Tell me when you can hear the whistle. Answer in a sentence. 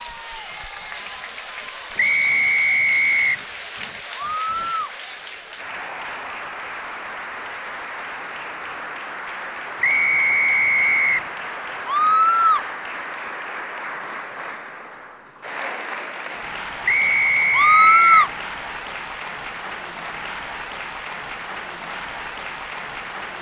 The whistle can be heard from 1.9 to 3.5 s, from 9.8 to 11.2 s and from 16.9 to 18.3 s.